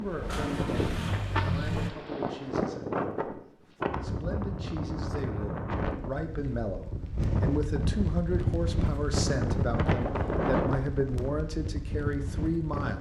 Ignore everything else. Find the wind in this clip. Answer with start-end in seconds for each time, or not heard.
0.0-12.9.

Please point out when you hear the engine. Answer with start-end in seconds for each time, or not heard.
0.1-1.9.